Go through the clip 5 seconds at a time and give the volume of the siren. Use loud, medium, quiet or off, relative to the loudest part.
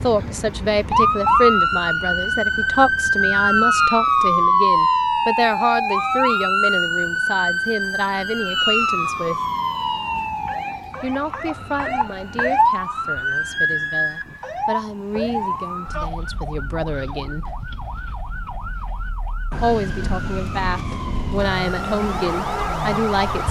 loud, loud, medium, quiet, medium.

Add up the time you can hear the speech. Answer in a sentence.
You can hear the speech for 20 seconds altogether.